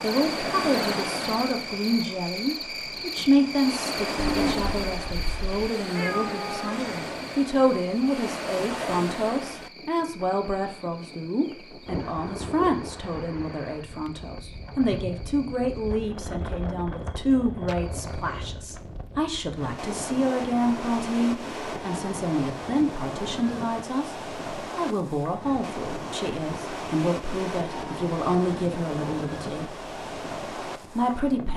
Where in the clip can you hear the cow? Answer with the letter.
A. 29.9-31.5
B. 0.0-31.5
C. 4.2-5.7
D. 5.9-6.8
C.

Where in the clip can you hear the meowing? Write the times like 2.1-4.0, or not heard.
5.9-6.8.